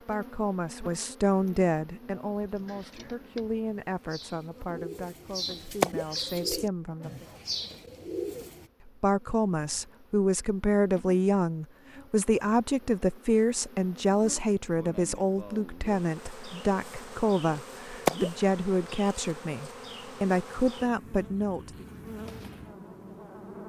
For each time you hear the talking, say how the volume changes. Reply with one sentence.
The talking can be heard from 0.0 to 7.2 s, getting quieter; and from 8.8 to 21.9 s, at a steady volume.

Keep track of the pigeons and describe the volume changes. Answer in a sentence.
The volume of the pigeons goes up.